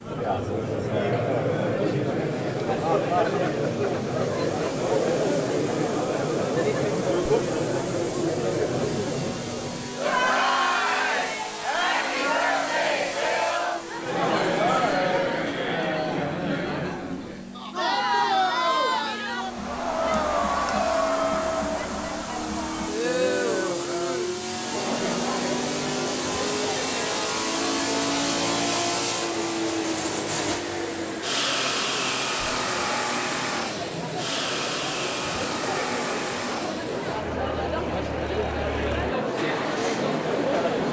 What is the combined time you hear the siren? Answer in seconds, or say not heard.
not heard.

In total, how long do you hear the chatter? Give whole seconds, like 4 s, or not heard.
41 s.